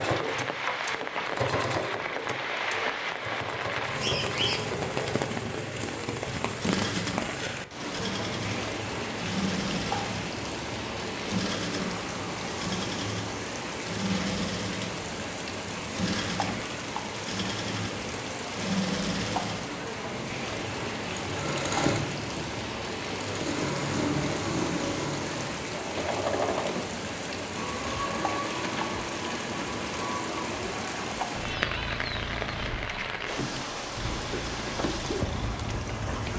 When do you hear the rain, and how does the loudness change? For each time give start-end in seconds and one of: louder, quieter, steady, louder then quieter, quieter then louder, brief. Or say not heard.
0.0-36.3 steady.